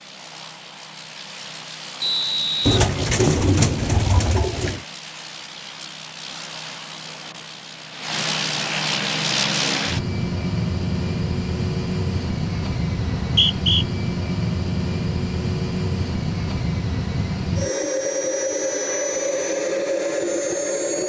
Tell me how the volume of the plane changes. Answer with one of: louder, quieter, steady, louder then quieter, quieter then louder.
louder.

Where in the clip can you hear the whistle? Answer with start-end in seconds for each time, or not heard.
2.0-3.4, 13.2-13.8.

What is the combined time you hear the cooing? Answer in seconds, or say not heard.
2 s.